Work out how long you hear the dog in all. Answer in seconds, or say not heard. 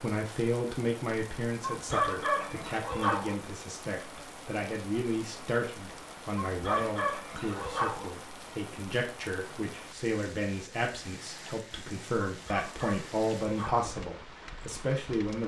5 s.